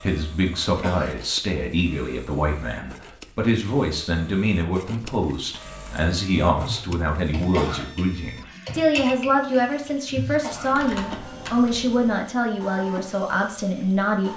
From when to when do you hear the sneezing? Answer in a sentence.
You can hear the sneezing from 0.7 to 1.2 s, from 7.4 to 7.9 s and from 10.3 to 10.8 s.